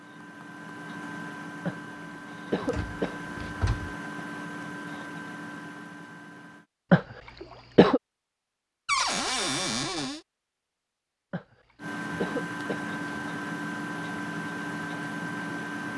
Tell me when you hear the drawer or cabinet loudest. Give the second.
9 s.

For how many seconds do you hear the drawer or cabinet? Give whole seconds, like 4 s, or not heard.
3 s.